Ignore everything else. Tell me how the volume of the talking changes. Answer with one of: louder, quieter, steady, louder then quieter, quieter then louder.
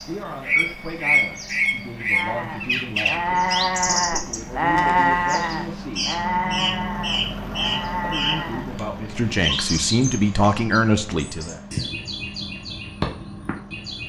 louder.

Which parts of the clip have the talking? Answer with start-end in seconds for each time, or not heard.
0.1-6.1, 8.0-11.6.